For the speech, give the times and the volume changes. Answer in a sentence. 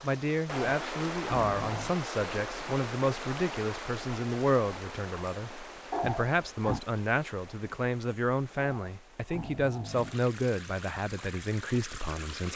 You can hear the speech from 0.0 to 12.5 s, at a steady volume.